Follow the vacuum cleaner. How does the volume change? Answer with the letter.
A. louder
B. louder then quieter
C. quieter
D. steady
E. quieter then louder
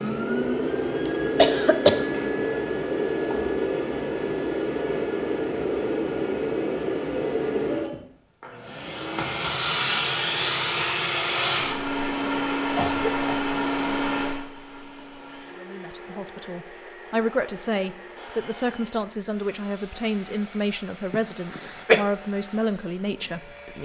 C.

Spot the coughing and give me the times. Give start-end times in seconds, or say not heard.
1.4-2.1, 12.8-13.3, 21.1-22.1.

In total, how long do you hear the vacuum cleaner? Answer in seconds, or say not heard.
24 s.